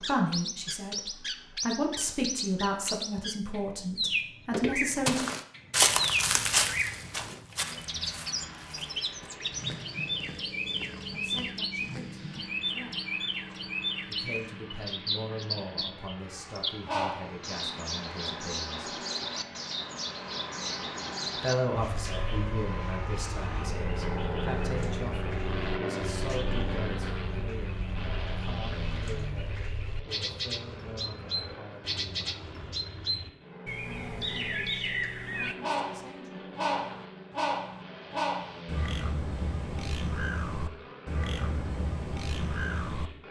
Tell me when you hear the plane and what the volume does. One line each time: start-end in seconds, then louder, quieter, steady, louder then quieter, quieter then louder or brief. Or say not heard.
7.6-43.2 louder then quieter.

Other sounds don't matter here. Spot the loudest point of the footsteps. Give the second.
6 s.